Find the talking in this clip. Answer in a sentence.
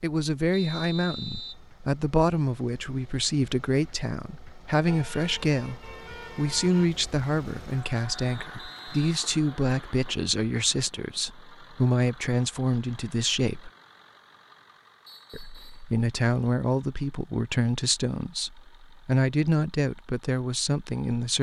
The talking can be heard from 0.0 to 13.7 s and from 15.3 to 21.3 s.